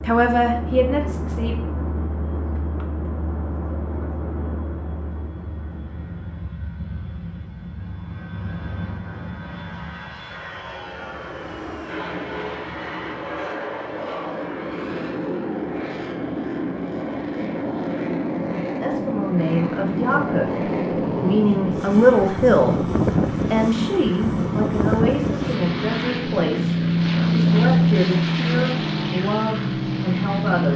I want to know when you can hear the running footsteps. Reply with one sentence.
The running footsteps can't be heard in this clip.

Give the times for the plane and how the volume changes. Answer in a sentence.
The plane can be heard from 0.0 to 30.7 s, getting louder.